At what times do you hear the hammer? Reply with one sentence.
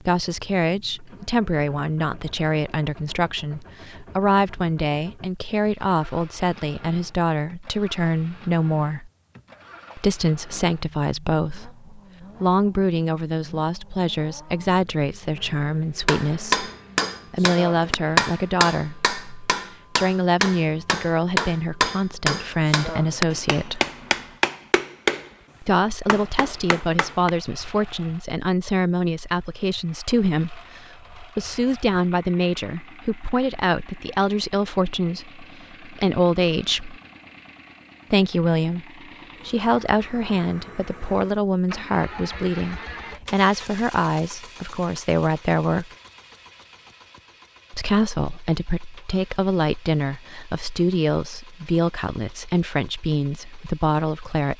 The hammer can be heard from 16.1 to 27.3 s.